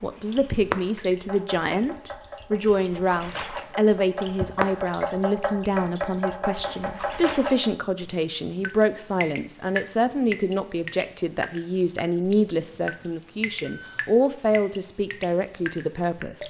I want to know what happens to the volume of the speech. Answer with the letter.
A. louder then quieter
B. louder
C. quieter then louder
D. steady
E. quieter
D.